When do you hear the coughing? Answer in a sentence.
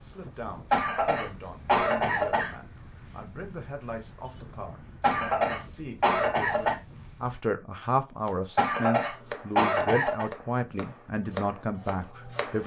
The coughing can be heard from 0.7 to 2.5 s, from 5.0 to 6.8 s and from 8.6 to 10.2 s.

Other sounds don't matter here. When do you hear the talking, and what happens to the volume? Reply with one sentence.
The talking can be heard from 0.0 to 12.6 s, getting louder.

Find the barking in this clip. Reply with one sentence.
The barking can't be heard in this clip.